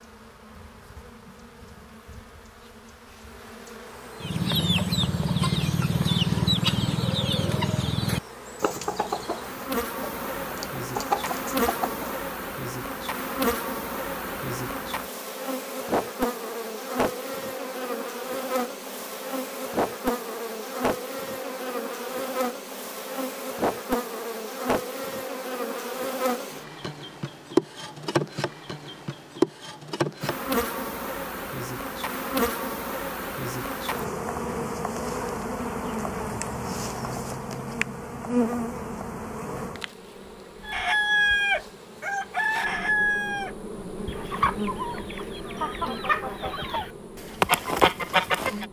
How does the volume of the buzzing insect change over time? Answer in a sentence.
The loudness of the buzzing insect goes up, then down.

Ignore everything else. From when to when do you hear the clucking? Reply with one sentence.
The clucking can be heard from 4.2 to 12.1 s and from 40.6 to 48.6 s.